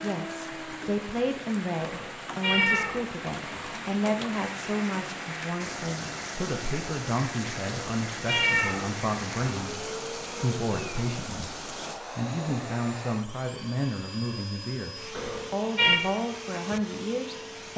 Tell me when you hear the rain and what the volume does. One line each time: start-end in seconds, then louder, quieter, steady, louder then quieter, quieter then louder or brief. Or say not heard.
0.0-12.0 steady.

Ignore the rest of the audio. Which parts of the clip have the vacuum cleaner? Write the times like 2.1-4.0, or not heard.
4.3-17.7.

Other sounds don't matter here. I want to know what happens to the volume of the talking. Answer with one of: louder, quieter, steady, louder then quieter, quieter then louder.
steady.